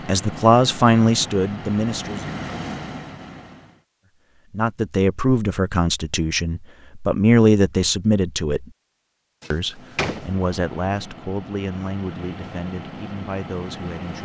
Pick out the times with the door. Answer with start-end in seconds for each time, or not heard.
9.4-10.2.